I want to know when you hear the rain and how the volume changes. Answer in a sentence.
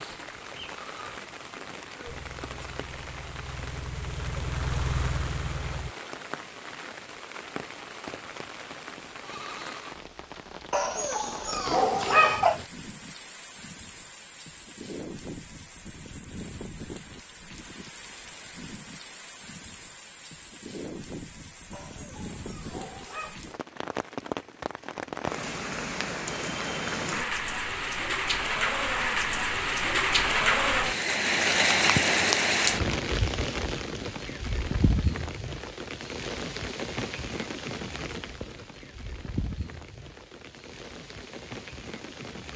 You can hear the rain from 0.0 to 42.5 s, getting louder then quieter.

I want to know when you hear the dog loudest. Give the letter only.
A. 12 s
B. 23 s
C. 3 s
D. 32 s
A.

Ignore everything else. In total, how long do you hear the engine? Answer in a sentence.
The engine can be heard for 4 seconds in total.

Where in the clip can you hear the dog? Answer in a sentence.
The dog can be heard from 10.7 to 12.7 s and from 21.7 to 23.4 s.